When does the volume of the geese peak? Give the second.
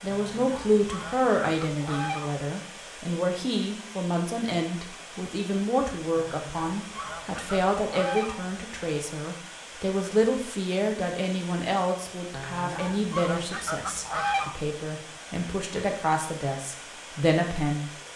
14 s.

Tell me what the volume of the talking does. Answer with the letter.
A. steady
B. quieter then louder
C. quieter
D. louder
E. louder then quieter
A.